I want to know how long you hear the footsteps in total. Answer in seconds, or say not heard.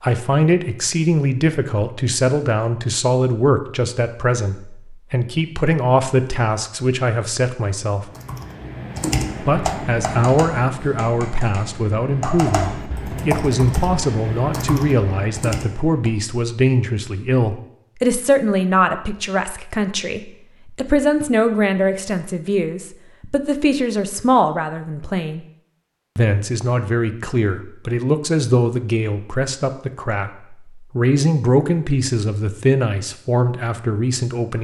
not heard.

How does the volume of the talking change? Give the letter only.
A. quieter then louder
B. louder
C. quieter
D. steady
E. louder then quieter
D.